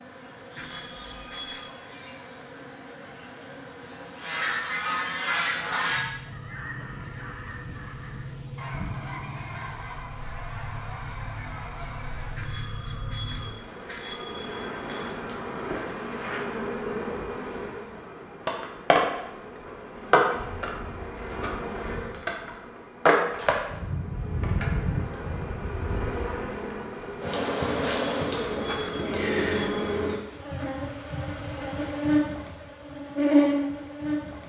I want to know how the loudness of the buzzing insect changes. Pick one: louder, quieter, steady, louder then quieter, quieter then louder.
louder.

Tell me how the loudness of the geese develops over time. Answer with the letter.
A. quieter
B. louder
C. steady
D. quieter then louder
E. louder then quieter
A.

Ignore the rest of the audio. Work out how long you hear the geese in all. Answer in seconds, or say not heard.
8 s.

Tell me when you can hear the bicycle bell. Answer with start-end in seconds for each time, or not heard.
0.6-1.7, 12.3-15.2, 27.9-29.9.